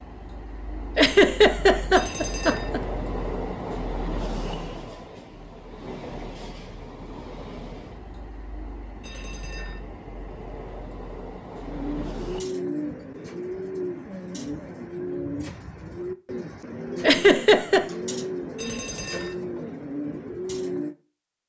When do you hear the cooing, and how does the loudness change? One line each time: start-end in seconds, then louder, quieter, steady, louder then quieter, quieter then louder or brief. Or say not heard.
11.6-20.9 steady.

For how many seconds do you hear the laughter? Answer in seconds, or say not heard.
3 s.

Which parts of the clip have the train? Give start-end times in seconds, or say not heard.
0.0-12.4.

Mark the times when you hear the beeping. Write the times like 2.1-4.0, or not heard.
1.9-2.7, 9.0-9.8, 18.6-19.4.